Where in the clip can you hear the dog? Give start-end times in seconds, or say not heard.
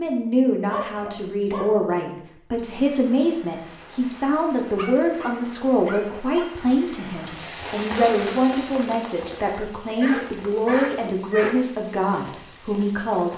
0.7-2.1, 4.8-6.5, 9.8-11.6.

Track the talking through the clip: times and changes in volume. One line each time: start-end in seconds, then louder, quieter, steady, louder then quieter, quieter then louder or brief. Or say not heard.
0.0-13.3 steady.